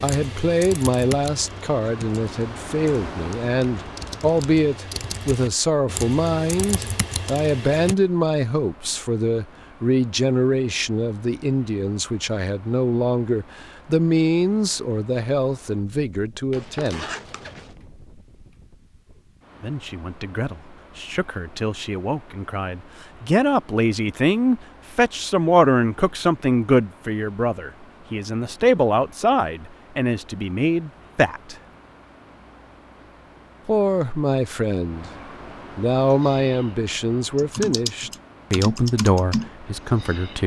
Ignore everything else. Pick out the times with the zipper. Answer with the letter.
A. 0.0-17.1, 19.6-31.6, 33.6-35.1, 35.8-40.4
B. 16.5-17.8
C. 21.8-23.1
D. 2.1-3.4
B.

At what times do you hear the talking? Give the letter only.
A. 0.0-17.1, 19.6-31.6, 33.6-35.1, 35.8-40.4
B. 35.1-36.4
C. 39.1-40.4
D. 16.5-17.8
A.